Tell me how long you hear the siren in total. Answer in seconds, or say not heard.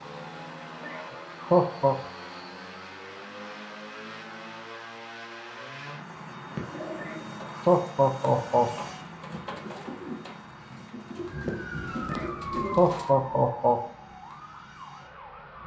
4 s.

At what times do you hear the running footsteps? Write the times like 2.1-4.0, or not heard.
not heard.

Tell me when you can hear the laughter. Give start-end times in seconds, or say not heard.
0.8-1.9, 7.0-8.7, 12.1-13.8.